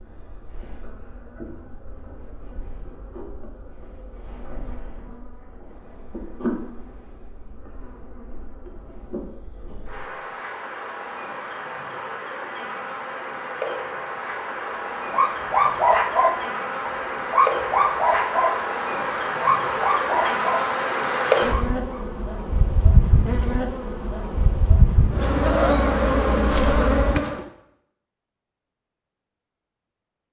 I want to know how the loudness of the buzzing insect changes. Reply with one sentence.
The volume of the buzzing insect goes up.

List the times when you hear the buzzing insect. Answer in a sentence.
The buzzing insect can be heard from 0.0 to 27.4 s.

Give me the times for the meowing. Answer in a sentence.
You can hear the meowing from 25.3 to 27.2 s.